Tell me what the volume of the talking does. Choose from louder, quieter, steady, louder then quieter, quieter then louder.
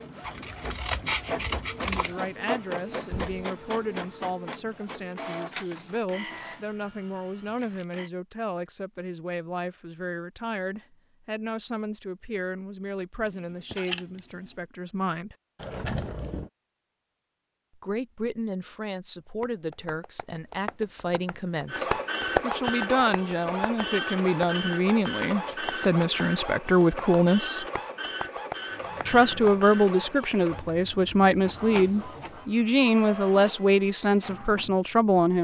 louder.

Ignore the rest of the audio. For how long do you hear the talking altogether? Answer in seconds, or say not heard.
30 s.